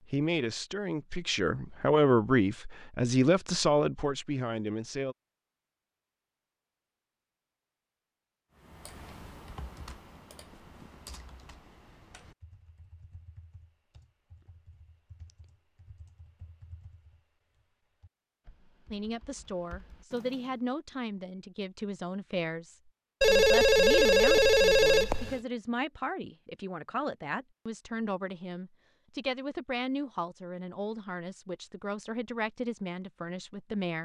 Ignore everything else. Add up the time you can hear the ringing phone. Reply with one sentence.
The ringing phone can be heard for 2 seconds in total.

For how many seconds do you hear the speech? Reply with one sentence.
You can hear the speech for 20 seconds altogether.